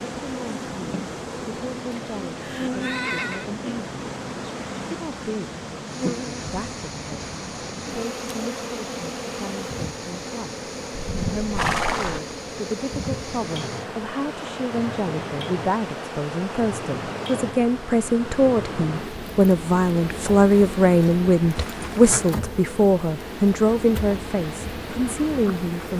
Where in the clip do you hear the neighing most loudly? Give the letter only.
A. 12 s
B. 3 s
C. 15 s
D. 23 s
A.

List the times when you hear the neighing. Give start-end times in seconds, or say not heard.
1.9-3.5, 10.9-12.2, 21.6-22.2.